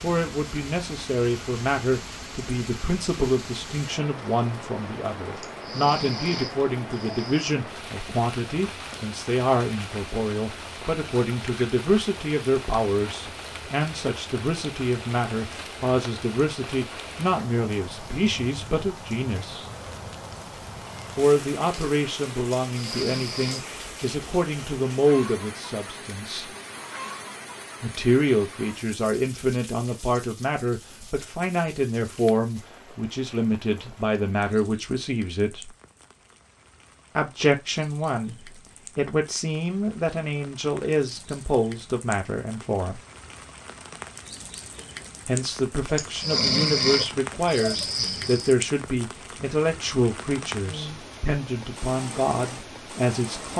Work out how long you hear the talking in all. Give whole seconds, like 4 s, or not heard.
47 s.